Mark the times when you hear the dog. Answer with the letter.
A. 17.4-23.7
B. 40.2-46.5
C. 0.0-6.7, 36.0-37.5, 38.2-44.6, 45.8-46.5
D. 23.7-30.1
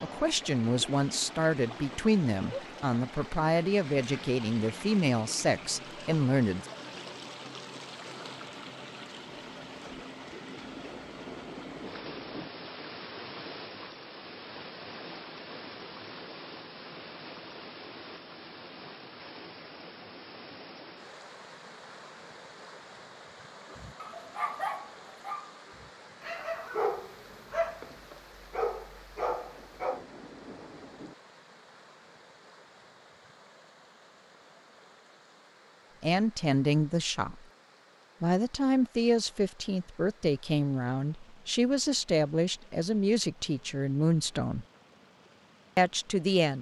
D.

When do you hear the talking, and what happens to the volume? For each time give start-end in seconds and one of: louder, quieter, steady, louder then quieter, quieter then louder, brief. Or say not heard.
0.0-6.7 steady
36.0-37.5 brief
38.2-44.6 steady
45.8-46.5 brief.